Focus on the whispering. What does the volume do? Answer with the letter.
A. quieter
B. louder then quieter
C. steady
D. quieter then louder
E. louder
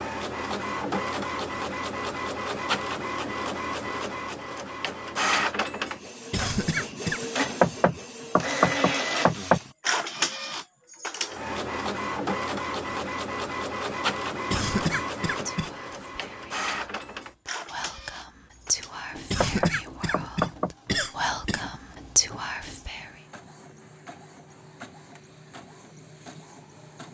E.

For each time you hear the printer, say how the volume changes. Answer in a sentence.
The printer can be heard from 0.0 to 27.0 s, getting quieter.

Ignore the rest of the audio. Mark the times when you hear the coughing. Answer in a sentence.
You can hear the coughing from 6.3 to 7.5 s, from 14.5 to 15.7 s and from 19.3 to 21.8 s.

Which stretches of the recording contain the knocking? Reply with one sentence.
The knocking can be heard from 7.6 to 9.6 s and from 19.4 to 20.7 s.